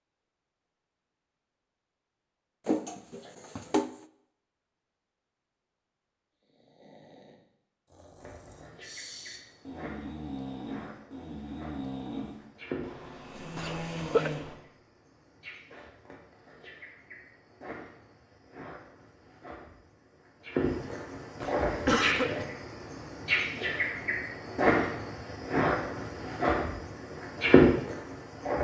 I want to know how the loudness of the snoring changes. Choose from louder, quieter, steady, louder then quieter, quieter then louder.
louder.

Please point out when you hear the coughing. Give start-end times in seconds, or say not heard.
2.6-3.9, 13.6-14.3, 21.4-22.4.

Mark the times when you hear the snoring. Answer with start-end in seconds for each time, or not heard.
6.4-14.6.